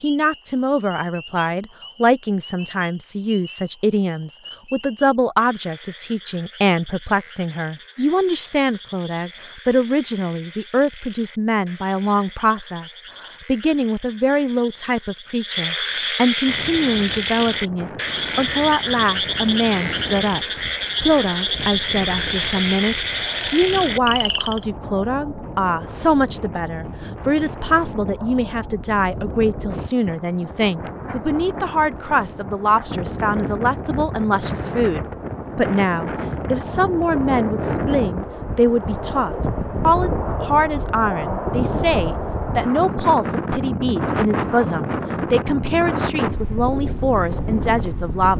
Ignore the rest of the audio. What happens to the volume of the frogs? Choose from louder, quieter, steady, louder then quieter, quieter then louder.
louder.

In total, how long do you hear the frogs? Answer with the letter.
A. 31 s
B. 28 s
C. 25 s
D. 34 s
C.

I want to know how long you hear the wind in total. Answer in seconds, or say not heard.
32 s.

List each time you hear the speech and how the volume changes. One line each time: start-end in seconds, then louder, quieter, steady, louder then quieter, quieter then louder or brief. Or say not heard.
0.0-48.3 steady.